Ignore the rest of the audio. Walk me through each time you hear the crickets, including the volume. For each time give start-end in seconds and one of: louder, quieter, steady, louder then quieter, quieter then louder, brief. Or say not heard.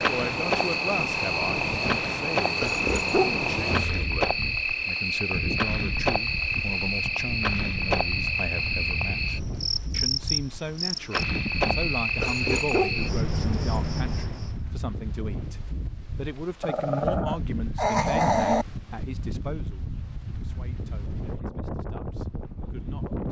0.0-14.6 steady.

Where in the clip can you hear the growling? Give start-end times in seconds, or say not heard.
2.6-4.1, 12.2-13.7, 16.6-18.6.